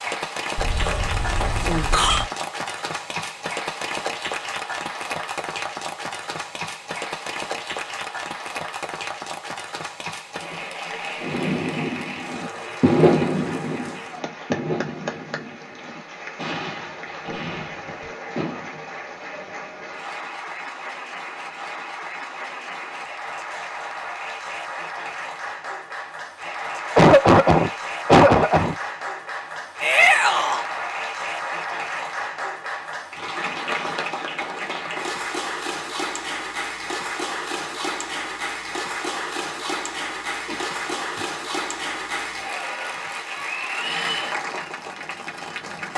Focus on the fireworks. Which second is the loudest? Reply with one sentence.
The loudest moment of the fireworks is at 13 seconds.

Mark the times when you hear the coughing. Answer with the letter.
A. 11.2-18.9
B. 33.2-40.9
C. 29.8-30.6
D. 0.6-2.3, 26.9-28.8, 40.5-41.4
D.